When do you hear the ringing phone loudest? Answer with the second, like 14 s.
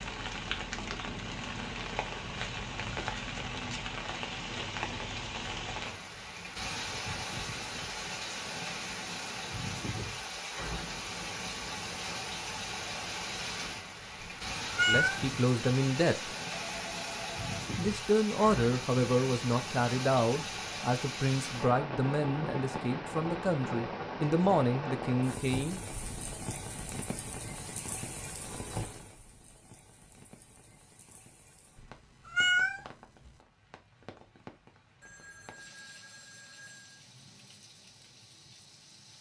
17 s.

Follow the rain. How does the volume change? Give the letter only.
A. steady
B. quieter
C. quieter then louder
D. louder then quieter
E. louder
B.